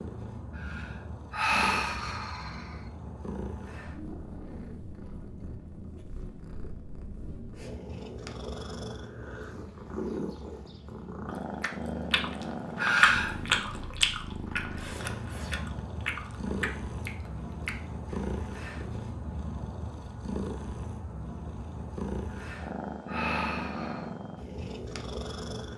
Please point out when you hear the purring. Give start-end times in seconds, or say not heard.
0.0-25.7.